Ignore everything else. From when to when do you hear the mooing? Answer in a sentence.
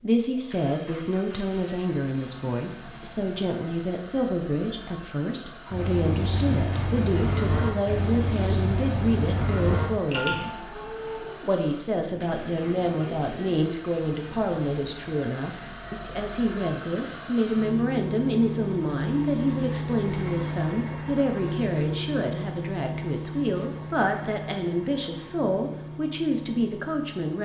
You can hear the mooing from 5.7 to 13.6 s.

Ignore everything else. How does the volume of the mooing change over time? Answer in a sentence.
The loudness of the mooing goes down.